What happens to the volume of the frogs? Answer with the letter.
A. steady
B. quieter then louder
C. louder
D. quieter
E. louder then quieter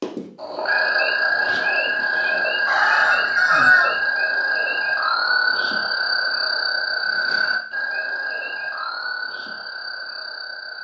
D.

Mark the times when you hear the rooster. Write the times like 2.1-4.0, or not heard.
2.6-4.0.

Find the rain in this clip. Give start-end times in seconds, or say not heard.
not heard.